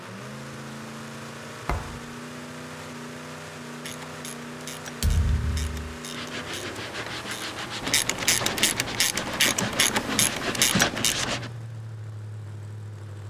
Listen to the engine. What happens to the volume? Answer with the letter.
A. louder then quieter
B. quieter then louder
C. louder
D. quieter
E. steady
E.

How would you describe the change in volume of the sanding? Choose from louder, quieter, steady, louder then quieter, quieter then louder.
louder.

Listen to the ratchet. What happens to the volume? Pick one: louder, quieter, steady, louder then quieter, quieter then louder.
louder.